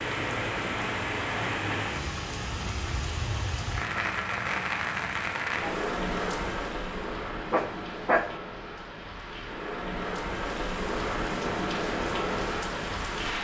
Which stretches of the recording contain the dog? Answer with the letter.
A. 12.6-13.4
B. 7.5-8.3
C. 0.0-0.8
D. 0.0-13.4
B.